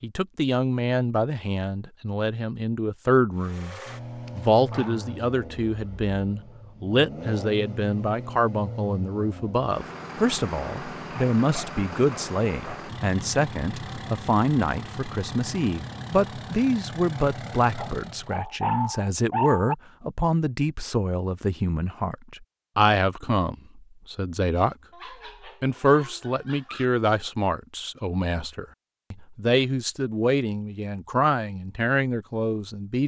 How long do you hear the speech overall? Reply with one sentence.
You can hear the speech for 32 seconds altogether.